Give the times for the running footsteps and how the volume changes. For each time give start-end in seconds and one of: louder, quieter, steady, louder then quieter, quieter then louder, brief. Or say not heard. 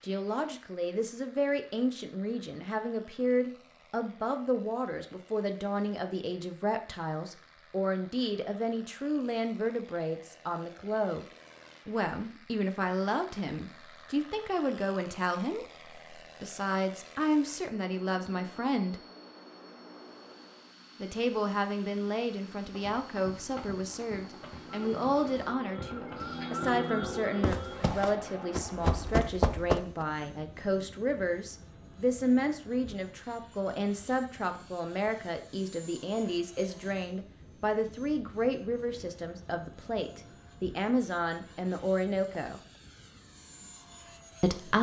22.7-30.1 louder.